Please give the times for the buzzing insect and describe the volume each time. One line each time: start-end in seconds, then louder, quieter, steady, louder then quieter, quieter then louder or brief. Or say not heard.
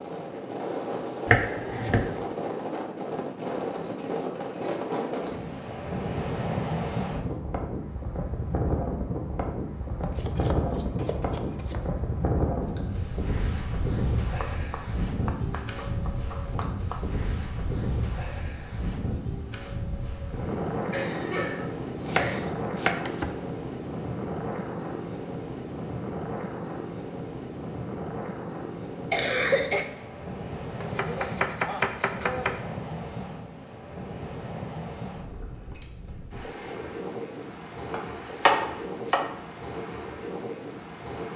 not heard.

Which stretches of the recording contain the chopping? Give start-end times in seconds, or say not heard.
1.2-2.1, 10.0-11.9, 14.3-17.1, 21.9-23.4, 30.8-32.5, 37.9-39.4.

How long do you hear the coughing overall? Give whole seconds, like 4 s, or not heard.
3 s.